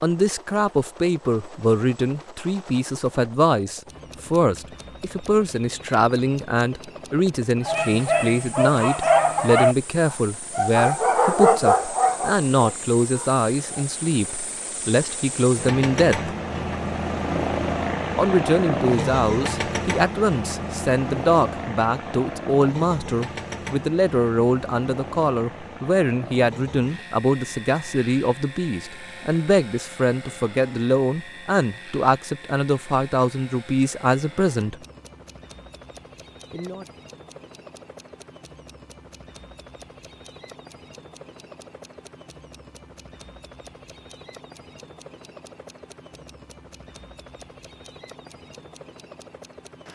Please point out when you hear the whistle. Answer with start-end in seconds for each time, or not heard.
not heard.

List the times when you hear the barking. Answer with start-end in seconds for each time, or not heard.
7.7-13.8.